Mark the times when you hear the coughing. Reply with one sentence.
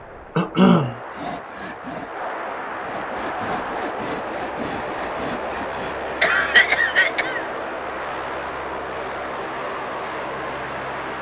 You can hear the coughing from 0.3 to 0.9 s and from 6.2 to 7.5 s.